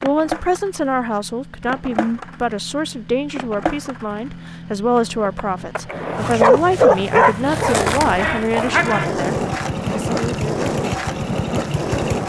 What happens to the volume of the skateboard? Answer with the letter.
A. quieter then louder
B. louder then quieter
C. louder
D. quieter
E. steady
C.